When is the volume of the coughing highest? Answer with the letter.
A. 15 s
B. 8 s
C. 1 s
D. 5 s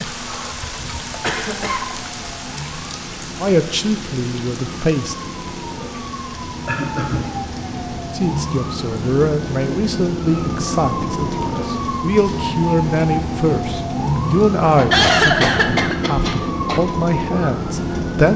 A.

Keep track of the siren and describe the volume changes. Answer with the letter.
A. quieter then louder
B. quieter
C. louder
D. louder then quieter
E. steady
C.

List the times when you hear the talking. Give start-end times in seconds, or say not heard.
3.4-5.2, 8.2-18.3.